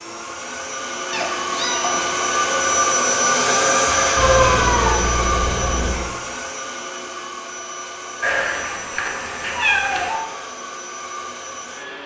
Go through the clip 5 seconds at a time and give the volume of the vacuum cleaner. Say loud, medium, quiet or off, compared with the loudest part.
loud, medium, quiet.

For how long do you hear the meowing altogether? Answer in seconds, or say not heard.
5 s.